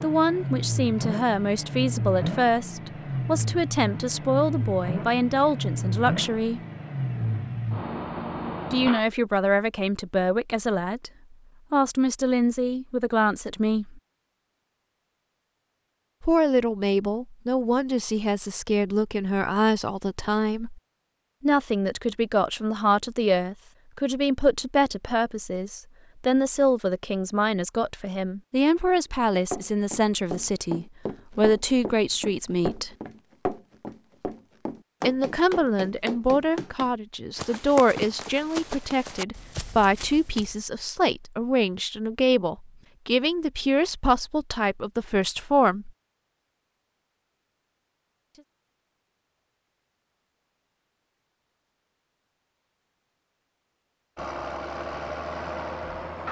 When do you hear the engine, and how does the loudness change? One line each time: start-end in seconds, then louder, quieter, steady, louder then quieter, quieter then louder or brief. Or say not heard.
0.0-9.1 steady
54.1-56.2 brief.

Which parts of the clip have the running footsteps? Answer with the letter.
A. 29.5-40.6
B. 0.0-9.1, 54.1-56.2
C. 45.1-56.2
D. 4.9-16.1
A.